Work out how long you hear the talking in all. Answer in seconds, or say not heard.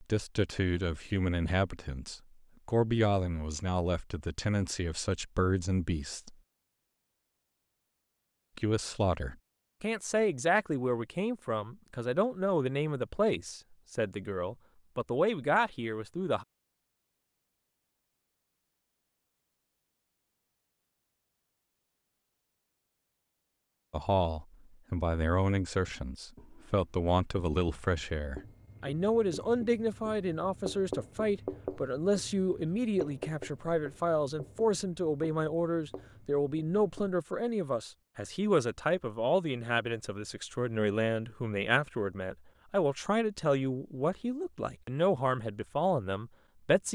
37 s.